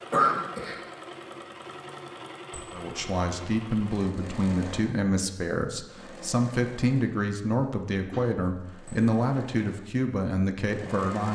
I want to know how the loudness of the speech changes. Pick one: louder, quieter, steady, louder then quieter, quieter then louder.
steady.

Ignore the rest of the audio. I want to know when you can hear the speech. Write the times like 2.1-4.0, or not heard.
2.7-11.3.